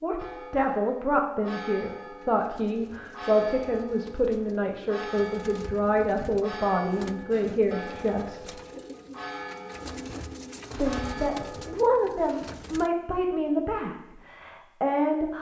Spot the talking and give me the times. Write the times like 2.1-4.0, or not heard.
0.0-8.6, 10.8-15.3.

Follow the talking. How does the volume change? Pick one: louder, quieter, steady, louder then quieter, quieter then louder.
steady.